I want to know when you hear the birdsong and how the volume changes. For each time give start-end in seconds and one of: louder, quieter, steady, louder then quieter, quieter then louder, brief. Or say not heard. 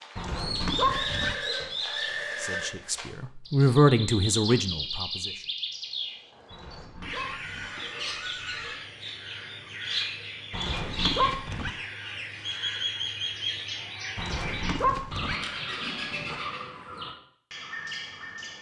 0.0-18.5 steady.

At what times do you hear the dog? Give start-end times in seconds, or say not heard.
0.1-1.4, 6.5-7.7, 10.5-11.7, 14.2-15.3.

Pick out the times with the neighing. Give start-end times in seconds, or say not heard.
0.8-2.7, 7.2-8.8, 15.2-16.4.